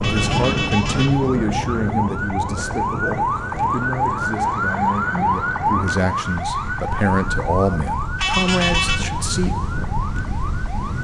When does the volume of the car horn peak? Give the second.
9 s.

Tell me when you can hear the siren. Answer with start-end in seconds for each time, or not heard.
0.1-11.0.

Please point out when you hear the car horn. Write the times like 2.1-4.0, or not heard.
0.0-1.2, 8.2-9.0.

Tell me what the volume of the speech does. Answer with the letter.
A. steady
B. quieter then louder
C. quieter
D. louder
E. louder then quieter
B.